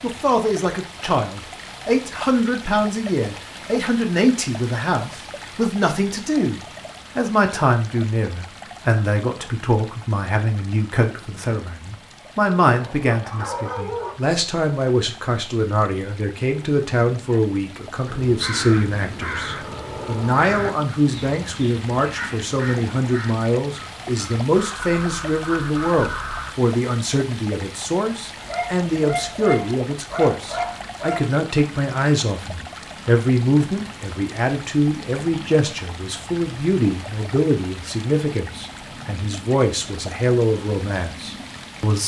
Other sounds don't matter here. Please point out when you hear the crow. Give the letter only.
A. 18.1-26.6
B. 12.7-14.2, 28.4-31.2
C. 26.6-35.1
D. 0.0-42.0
A.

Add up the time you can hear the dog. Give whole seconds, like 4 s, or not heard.
4 s.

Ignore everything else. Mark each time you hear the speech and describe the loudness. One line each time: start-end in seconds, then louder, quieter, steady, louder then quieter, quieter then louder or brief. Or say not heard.
0.0-42.0 steady.